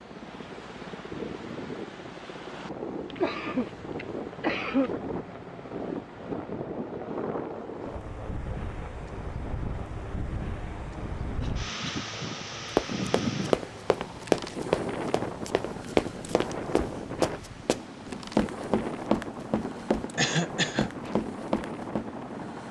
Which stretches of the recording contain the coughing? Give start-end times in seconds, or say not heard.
3.1-4.9, 11.2-12.1, 20.1-20.9.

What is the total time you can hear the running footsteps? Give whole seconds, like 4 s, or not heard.
9 s.